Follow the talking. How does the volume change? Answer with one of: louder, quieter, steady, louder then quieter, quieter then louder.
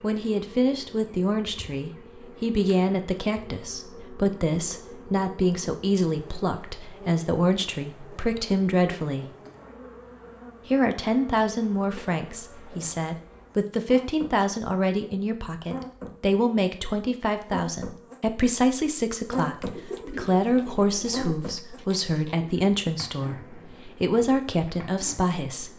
steady.